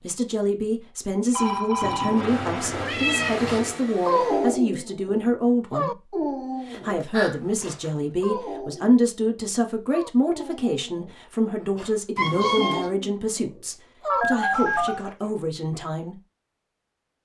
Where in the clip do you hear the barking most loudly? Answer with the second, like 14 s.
4 s.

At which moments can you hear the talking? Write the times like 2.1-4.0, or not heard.
0.0-6.0, 6.7-16.2.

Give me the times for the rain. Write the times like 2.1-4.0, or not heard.
not heard.